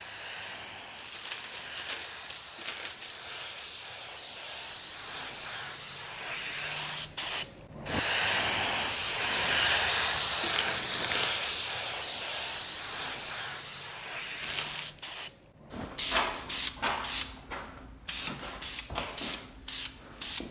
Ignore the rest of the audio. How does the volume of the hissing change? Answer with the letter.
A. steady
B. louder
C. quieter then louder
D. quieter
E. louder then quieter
E.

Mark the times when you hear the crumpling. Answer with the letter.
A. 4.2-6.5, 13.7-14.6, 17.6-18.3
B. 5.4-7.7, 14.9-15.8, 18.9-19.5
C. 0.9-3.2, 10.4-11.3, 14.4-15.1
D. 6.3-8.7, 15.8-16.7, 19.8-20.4
C.